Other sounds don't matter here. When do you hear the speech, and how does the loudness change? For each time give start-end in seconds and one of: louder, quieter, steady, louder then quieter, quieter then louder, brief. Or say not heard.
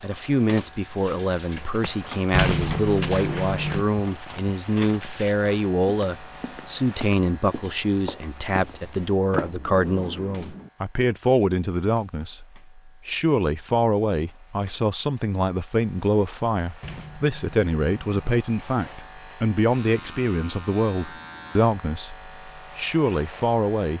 0.0-23.9 steady.